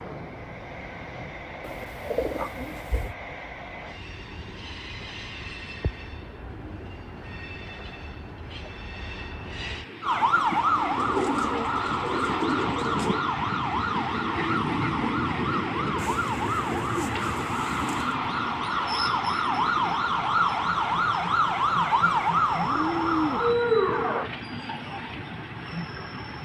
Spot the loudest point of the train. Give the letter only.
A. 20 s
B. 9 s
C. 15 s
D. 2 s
C.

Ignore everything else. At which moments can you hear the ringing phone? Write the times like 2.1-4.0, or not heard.
not heard.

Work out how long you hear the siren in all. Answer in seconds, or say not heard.
14 s.